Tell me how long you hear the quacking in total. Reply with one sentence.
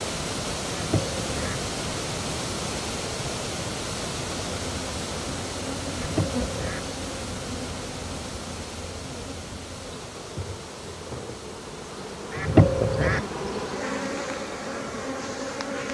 You can hear the quacking for 3 seconds altogether.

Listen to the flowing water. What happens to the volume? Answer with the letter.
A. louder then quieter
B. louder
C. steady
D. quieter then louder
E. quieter
E.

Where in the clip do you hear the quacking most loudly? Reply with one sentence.
The volume of the quacking peaks at 13 seconds.